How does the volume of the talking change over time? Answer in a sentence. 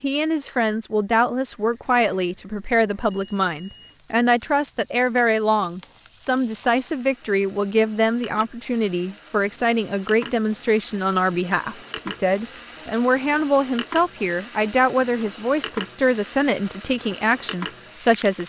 The volume of the talking stays about the same.